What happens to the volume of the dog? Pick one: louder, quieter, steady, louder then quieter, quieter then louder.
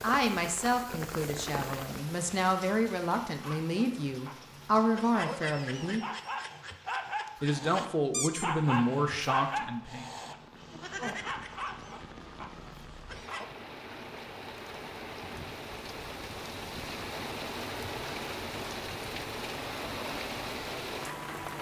louder then quieter.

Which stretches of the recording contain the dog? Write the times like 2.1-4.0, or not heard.
3.4-13.4.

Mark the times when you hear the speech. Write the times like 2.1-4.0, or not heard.
0.0-6.0, 7.4-10.1.